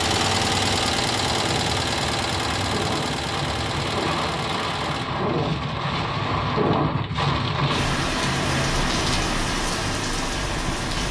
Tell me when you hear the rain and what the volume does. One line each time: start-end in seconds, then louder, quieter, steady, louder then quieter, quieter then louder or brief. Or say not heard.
0.0-11.0 louder.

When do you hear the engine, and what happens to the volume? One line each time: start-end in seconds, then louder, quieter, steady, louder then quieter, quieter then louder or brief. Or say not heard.
0.0-5.0 quieter.